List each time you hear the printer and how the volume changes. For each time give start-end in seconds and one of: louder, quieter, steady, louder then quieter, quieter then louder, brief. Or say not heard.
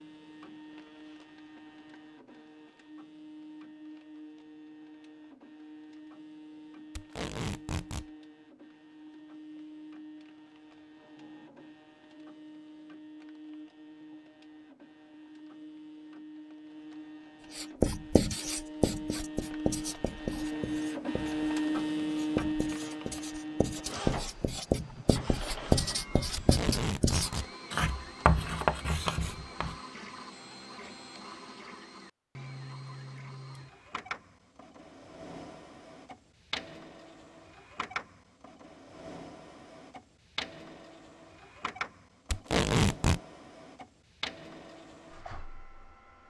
0.0-46.2 louder then quieter.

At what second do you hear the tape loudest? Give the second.
43 s.